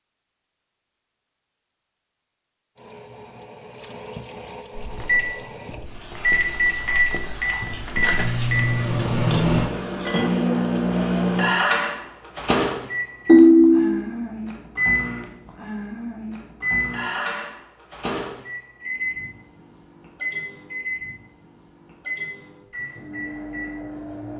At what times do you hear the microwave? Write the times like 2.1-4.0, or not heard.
4.8-24.3.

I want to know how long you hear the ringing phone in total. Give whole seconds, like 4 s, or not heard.
3 s.